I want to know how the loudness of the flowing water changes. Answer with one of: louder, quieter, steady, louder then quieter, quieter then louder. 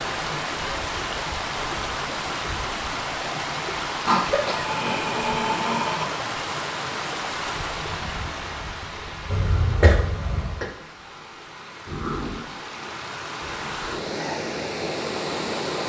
quieter then louder.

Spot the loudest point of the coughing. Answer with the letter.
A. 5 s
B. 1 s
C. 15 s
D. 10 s
D.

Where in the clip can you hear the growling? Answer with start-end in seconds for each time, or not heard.
4.0-6.0, 11.8-12.4.